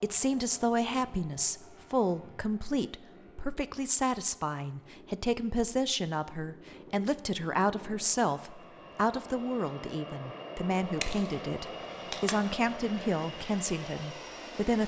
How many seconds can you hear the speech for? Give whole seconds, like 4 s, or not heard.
15 s.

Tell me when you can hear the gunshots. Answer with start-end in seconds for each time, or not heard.
11.0-12.6.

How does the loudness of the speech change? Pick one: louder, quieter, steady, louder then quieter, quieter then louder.
steady.